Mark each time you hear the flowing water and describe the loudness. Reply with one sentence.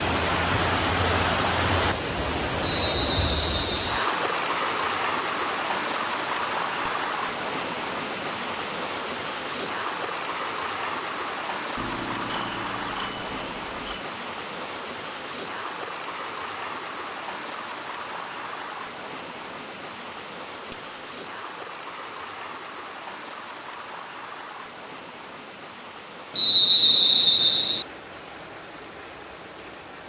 The flowing water can be heard from 0.0 to 30.0 s, getting quieter.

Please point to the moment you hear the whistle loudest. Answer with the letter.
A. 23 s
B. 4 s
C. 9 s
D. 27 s
D.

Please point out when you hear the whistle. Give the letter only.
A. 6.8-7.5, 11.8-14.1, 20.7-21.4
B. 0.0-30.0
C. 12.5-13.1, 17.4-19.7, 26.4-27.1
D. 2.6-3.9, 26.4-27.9
D.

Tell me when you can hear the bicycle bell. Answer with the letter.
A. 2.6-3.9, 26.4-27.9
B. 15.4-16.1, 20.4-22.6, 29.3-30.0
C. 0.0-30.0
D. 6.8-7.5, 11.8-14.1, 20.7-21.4
D.